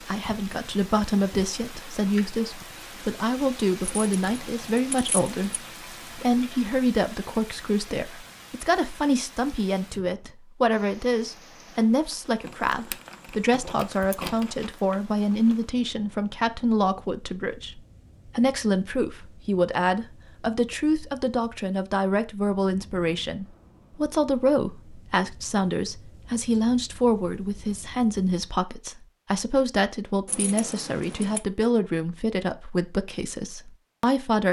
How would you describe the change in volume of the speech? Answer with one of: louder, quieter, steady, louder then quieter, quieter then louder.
steady.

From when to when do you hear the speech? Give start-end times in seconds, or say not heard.
0.1-34.4.